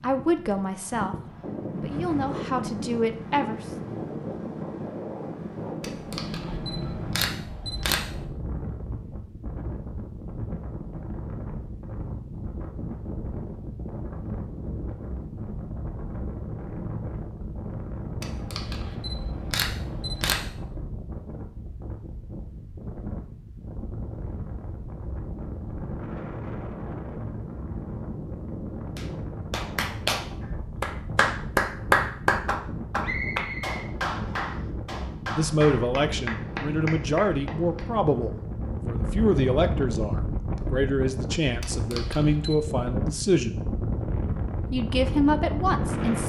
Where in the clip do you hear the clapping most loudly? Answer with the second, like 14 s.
32 s.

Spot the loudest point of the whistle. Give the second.
33 s.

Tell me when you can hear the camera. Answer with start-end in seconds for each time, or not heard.
5.8-8.2, 18.2-20.6, 41.6-42.6.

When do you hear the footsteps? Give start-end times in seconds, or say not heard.
not heard.